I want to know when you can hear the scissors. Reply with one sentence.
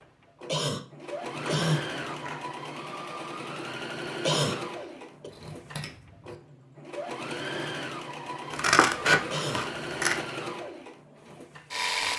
The scissors can be heard from 1.3 to 2.5 s, from 5.3 to 6.3 s and from 8.5 to 10.2 s.